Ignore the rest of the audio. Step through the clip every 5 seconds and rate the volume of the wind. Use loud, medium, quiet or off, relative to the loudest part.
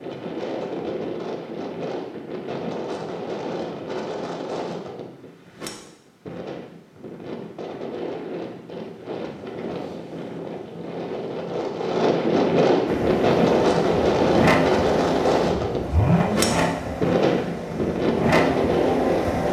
medium, quiet, loud, loud.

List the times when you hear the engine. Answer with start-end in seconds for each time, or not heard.
12.8-19.4.